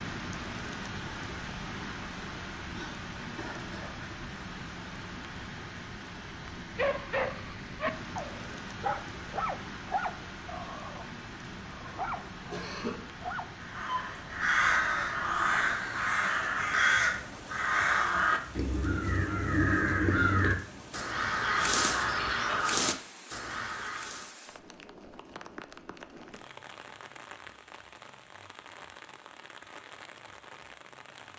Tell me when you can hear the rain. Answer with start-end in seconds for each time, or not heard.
0.0-31.3.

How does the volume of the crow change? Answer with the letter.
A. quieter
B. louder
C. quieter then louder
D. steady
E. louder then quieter
D.